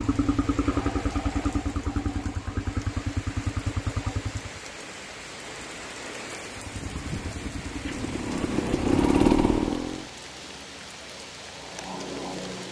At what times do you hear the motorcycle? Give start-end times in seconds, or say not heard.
0.0-4.6, 6.5-10.1.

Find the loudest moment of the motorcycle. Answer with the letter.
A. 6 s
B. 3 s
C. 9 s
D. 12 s
C.